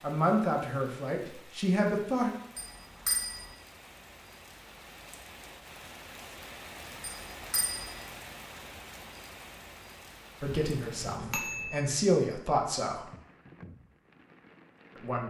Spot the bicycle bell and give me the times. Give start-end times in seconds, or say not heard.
2.5-3.5, 7.0-8.0, 10.4-11.8.